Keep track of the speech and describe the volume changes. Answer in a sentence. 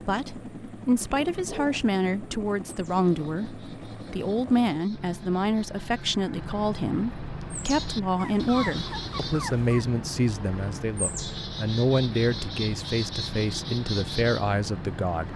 The volume of the speech stays about the same.